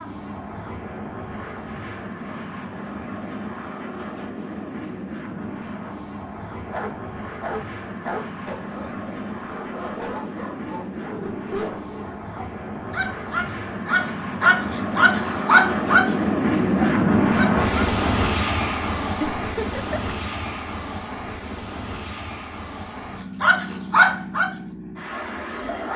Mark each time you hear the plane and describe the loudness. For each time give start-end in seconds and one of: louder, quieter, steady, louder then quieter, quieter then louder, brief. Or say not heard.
0.0-25.9 louder then quieter.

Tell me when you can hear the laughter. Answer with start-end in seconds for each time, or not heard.
19.2-20.1.